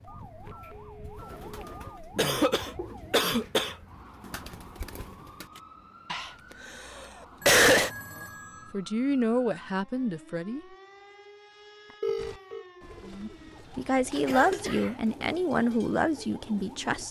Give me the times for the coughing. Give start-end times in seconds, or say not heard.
2.1-3.8, 6.1-7.9, 14.2-14.9.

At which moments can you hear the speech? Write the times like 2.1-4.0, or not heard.
8.2-10.6, 13.1-17.0.